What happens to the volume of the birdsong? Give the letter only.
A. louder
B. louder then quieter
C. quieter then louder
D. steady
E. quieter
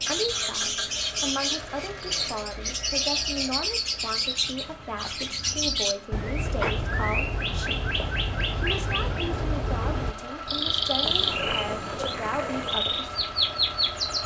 D.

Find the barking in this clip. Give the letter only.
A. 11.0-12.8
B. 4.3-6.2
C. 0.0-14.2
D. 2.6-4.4
A.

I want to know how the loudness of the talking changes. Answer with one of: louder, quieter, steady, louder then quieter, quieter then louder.
steady.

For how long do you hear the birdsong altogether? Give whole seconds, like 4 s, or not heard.
14 s.